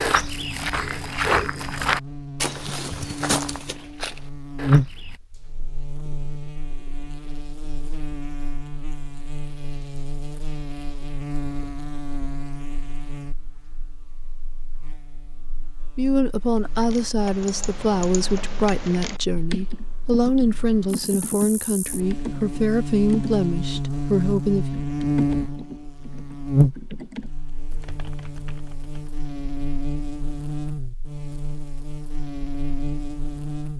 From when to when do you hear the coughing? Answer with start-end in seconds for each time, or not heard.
not heard.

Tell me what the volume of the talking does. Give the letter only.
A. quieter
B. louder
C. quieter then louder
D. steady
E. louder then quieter
D.